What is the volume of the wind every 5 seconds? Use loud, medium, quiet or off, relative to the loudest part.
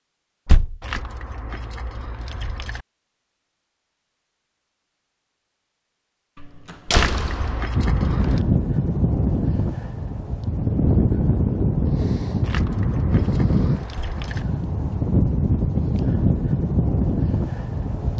off, loud, loud, loud.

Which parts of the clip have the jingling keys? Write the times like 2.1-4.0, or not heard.
0.8-2.9, 6.9-8.4, 12.4-14.4.